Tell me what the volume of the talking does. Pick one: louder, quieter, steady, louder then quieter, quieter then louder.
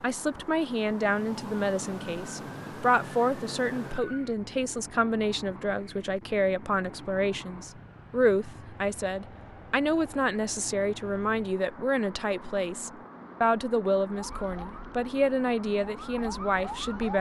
steady.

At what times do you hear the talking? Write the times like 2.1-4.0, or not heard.
0.0-17.1.